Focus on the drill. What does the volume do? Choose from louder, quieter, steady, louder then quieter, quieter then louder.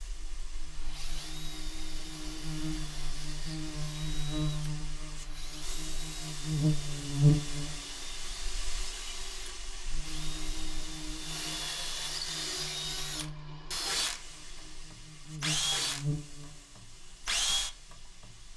louder.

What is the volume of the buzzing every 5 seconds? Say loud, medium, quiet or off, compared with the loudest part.
medium, loud, quiet, medium.